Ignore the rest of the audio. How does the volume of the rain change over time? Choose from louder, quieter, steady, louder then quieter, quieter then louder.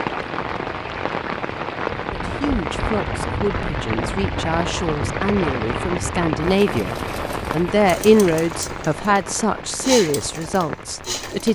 quieter.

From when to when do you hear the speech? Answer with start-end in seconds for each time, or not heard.
2.1-11.5.